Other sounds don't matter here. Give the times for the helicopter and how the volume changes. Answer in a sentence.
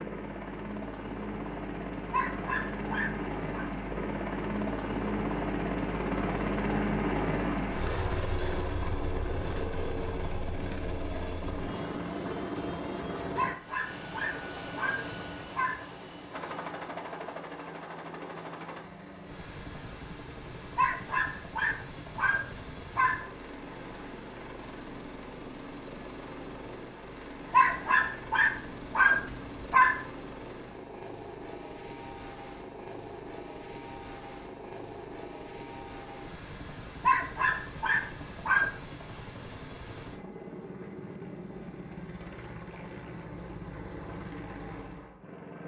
You can hear the helicopter from 0.0 to 45.6 s, getting quieter.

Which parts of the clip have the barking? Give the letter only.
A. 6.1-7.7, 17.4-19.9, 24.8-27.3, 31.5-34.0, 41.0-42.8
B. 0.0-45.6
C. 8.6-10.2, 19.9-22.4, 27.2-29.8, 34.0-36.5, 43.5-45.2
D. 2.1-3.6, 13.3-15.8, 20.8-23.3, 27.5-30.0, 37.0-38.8
D.